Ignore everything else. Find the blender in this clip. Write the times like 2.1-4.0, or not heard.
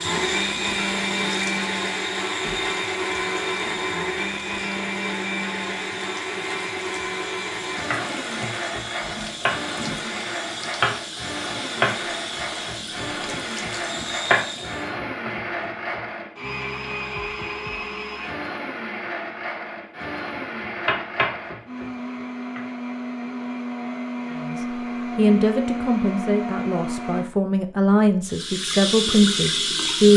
0.0-27.3.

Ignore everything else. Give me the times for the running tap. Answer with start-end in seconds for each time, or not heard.
0.0-14.9, 28.2-30.1.